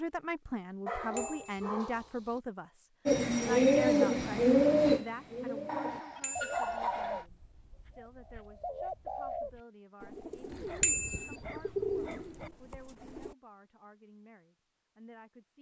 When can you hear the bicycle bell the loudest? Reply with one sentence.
The volume of the bicycle bell peaks at 11 seconds.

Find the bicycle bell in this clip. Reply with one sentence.
You can hear the bicycle bell from 1.1 to 1.7 s, from 6.2 to 6.8 s and from 10.8 to 11.3 s.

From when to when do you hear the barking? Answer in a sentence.
The barking can be heard from 0.8 to 2.4 s, from 5.7 to 7.2 s and from 10.4 to 12.5 s.